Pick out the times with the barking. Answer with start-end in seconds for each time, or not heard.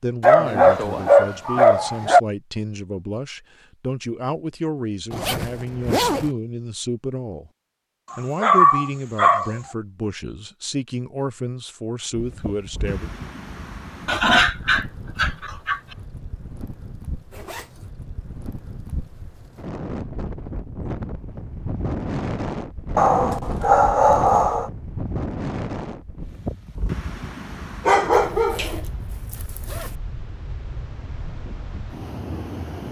0.2-2.2, 8.1-9.6, 14.1-15.8, 22.9-24.7, 27.9-28.8.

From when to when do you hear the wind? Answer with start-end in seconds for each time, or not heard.
12.1-32.8.